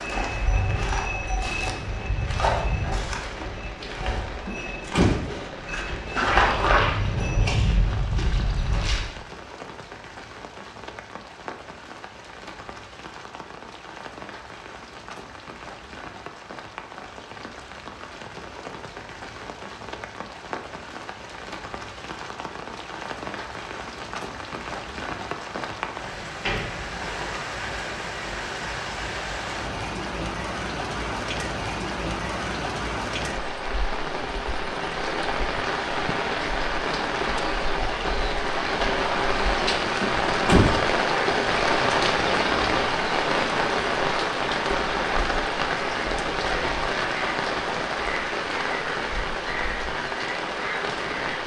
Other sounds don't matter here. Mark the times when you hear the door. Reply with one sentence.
The door can be heard from 4.5 to 5.3 s, from 26.0 to 27.1 s and from 40.0 to 40.8 s.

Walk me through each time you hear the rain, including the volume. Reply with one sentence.
The rain can be heard from 0.0 to 51.4 s, getting louder.